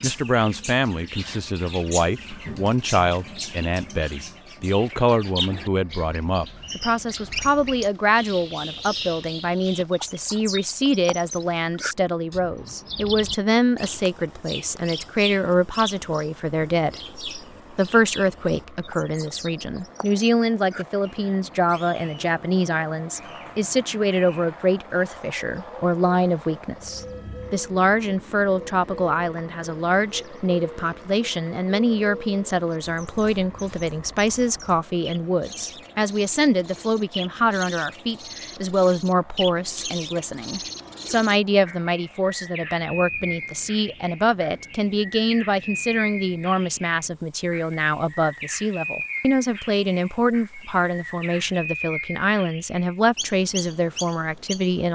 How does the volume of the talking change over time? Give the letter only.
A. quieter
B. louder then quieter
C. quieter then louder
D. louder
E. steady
E.